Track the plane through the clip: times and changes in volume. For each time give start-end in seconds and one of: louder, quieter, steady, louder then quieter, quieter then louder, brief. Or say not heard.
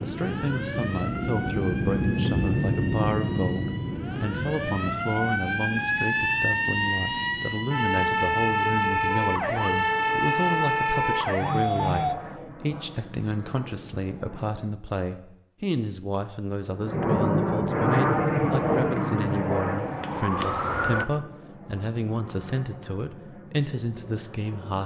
0.0-14.8 quieter
16.6-24.8 quieter.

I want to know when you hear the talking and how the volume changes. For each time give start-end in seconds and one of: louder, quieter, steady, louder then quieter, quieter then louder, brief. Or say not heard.
0.0-24.8 steady.